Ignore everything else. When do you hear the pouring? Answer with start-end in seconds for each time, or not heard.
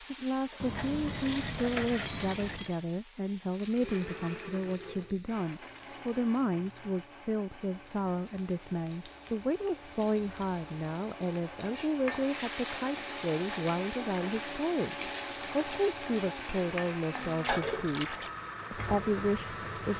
0.6-2.7, 17.4-18.4.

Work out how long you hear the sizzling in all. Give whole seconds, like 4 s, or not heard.
20 s.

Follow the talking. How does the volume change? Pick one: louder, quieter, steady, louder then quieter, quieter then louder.
steady.